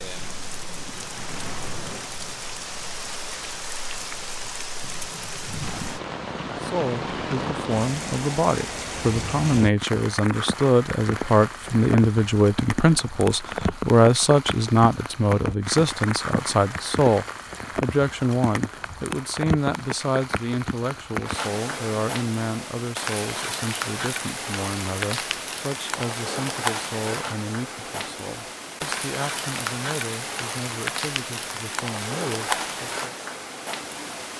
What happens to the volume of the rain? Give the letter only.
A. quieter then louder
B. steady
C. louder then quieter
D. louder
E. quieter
B.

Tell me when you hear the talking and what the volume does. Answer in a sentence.
The talking can be heard from 6.5 to 33.1 s, getting quieter.